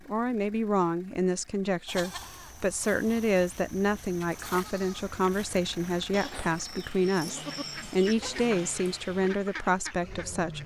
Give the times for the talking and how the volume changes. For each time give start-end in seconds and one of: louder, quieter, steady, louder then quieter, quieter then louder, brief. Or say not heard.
0.1-10.6 steady.